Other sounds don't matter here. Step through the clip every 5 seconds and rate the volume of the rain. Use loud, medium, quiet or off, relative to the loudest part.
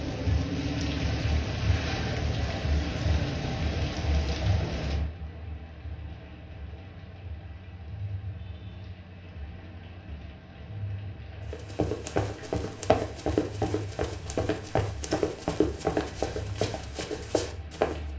loud, quiet, quiet, quiet.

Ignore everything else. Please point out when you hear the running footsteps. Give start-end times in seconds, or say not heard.
11.5-18.0.